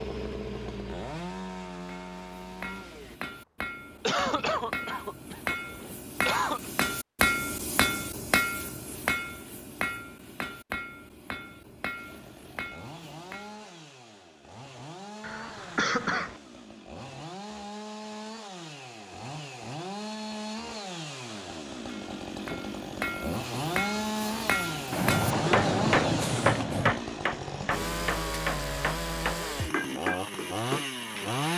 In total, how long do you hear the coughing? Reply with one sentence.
The coughing can be heard for 5 seconds in total.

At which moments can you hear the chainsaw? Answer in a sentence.
The chainsaw can be heard from 0.0 to 3.2 s and from 11.9 to 31.5 s.